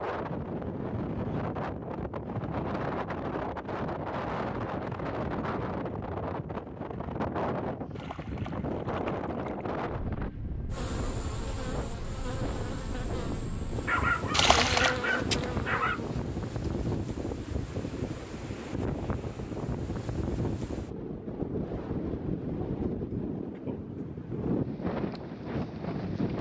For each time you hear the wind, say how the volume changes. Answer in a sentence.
You can hear the wind from 0.0 to 26.3 s, at a steady volume.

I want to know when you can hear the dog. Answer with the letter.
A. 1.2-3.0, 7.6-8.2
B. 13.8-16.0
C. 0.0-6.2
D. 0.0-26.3
B.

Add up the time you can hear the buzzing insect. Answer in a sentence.
The buzzing insect can be heard for 6 seconds in total.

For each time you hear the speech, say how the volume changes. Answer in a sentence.
The speech can't be heard in this clip.